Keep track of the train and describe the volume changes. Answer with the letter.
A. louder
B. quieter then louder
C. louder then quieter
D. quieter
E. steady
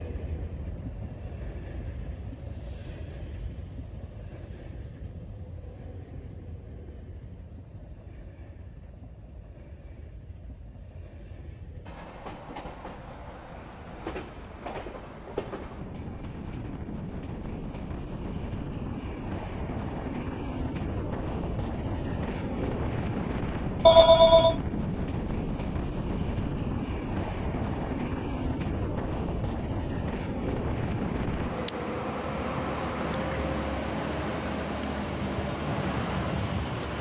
A.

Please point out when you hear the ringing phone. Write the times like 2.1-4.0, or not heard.
23.9-24.6.